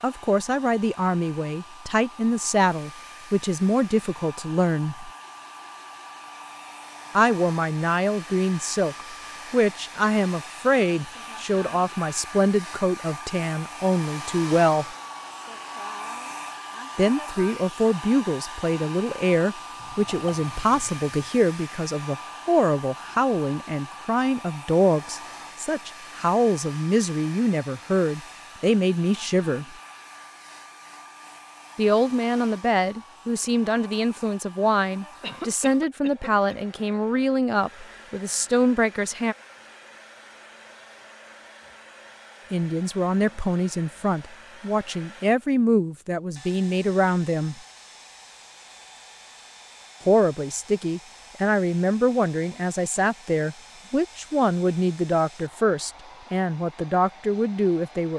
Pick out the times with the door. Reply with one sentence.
The door can't be heard in this clip.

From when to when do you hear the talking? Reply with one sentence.
The talking can be heard from 0.0 to 5.1 s, from 7.2 to 14.9 s, from 16.9 to 29.8 s, from 31.8 to 39.4 s, from 42.5 to 47.6 s and from 50.0 to 58.1 s.